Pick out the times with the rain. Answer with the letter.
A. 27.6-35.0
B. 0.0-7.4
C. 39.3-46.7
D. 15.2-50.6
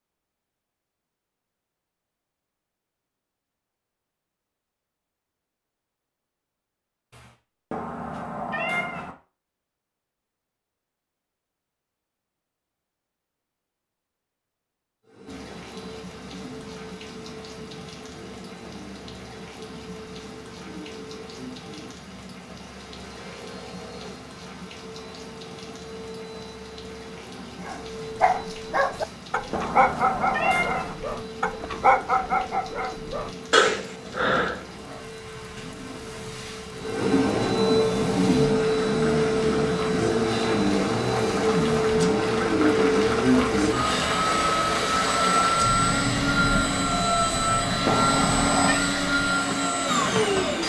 D.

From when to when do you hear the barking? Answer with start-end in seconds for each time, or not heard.
27.6-35.0.